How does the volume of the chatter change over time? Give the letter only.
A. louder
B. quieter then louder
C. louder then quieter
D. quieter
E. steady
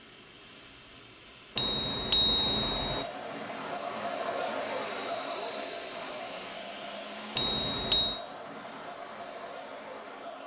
D.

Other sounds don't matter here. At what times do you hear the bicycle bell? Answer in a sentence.
The bicycle bell can be heard from 1.6 to 3.0 s and from 7.3 to 8.2 s.